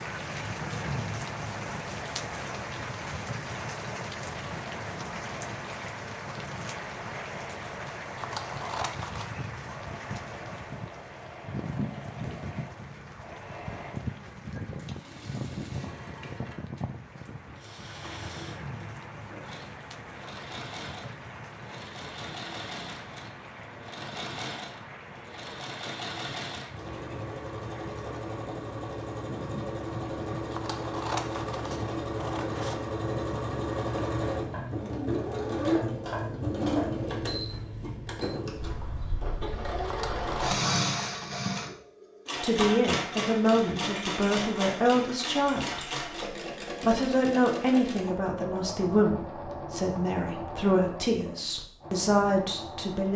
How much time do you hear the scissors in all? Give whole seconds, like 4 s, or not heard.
5 s.